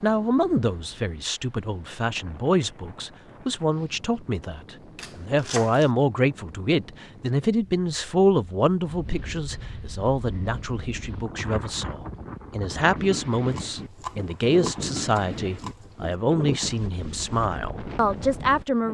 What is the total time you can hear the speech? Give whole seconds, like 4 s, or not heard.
19 s.